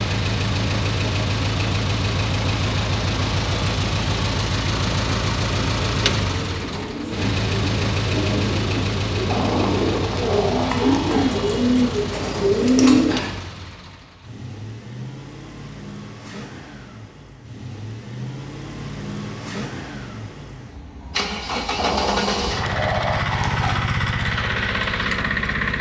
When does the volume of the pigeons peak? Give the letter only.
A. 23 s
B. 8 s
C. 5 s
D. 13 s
D.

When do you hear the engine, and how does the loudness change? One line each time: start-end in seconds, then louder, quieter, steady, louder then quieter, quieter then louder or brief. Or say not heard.
0.0-25.7 quieter then louder.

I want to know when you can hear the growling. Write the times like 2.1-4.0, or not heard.
9.2-11.3, 21.8-23.8.